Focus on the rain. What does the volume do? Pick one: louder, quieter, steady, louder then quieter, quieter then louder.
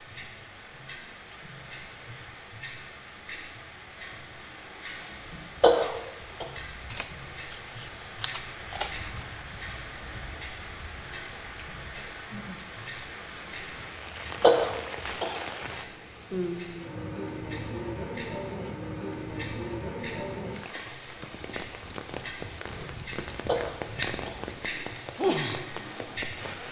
louder.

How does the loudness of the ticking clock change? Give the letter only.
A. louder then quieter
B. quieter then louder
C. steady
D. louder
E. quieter
D.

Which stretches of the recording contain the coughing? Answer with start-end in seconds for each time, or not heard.
5.6-6.5, 14.4-15.3, 23.4-24.4.